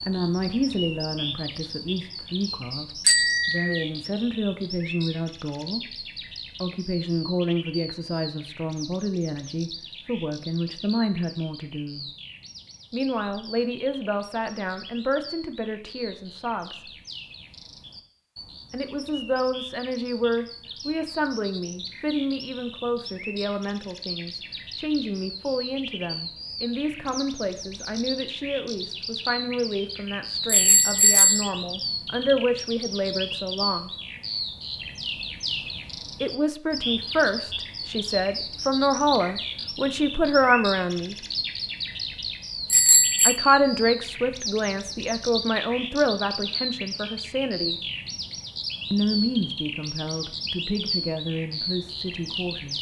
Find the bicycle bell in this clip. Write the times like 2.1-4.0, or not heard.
3.0-3.9, 30.4-31.5, 42.7-43.4.